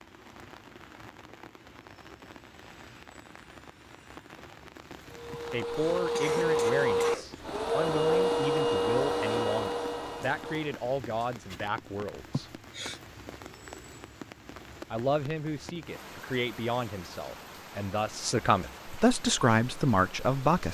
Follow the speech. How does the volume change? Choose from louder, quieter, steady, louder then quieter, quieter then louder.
louder.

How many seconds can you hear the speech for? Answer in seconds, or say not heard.
13 s.